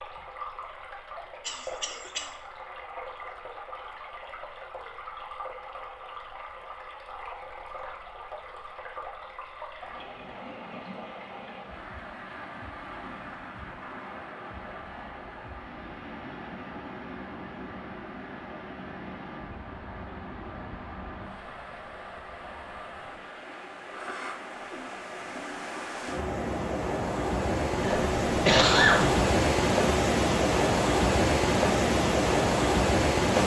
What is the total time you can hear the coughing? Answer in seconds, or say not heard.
2 s.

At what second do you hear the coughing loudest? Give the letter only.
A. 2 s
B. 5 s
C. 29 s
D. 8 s
C.